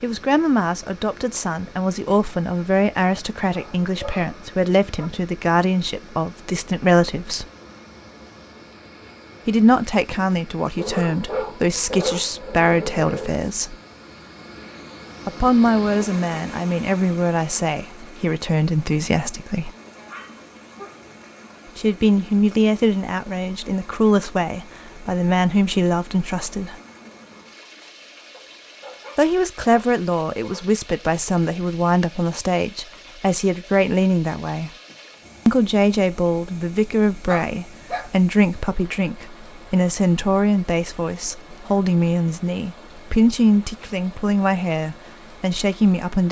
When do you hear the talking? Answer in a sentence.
The talking can be heard from 0.0 to 7.5 s, from 9.4 to 13.8 s, from 15.2 to 19.7 s, from 21.8 to 26.8 s, from 29.1 to 34.7 s and from 35.5 to 46.2 s.